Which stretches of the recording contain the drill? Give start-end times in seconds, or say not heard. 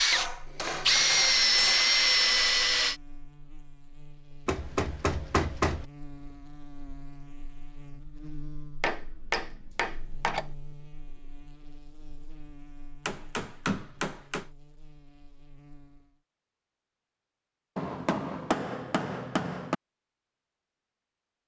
0.0-3.0.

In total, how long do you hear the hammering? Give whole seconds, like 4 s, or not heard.
8 s.